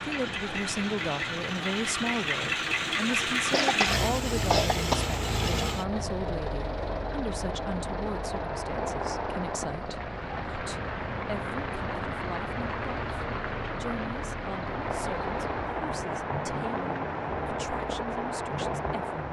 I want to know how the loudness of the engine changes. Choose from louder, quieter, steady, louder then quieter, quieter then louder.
quieter.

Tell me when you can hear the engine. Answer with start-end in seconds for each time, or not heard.
0.0-19.2.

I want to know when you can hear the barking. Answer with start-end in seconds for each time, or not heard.
not heard.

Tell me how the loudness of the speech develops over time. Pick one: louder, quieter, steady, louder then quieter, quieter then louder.
quieter.